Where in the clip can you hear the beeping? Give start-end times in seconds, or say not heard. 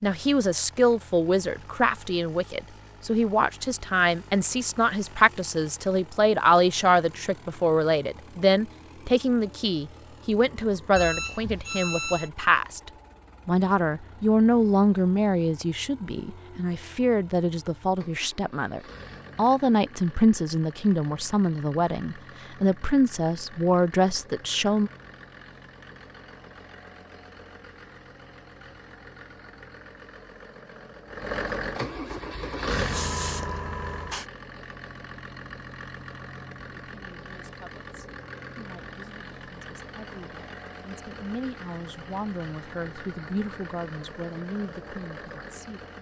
10.9-12.3.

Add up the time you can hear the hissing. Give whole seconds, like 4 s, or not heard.
2 s.